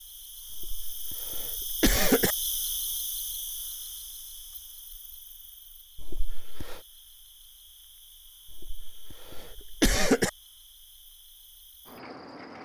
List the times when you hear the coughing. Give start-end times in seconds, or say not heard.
0.5-2.4, 6.0-6.8, 8.4-10.3.